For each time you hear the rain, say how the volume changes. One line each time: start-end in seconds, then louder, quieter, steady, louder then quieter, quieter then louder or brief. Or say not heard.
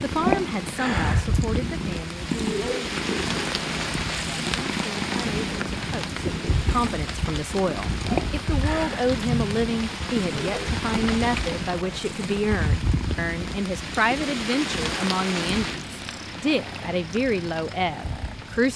0.0-18.7 steady.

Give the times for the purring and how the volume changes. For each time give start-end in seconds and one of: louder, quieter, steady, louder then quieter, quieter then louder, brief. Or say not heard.
0.0-18.7 quieter.